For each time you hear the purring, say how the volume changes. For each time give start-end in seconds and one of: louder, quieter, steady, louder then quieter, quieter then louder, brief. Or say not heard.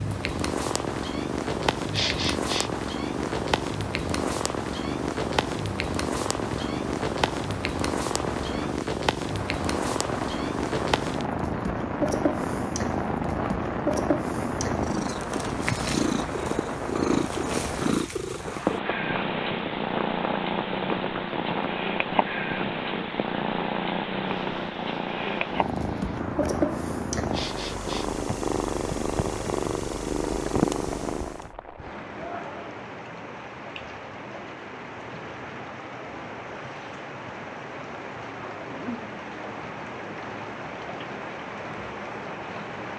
0.0-31.5 steady.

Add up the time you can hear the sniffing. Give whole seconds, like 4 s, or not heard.
2 s.